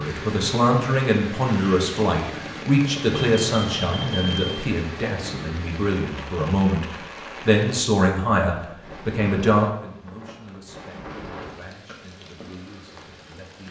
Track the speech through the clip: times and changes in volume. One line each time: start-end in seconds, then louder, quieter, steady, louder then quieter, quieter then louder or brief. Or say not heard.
0.0-13.6 quieter.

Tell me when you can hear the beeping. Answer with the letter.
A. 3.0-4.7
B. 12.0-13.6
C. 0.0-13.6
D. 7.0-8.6
A.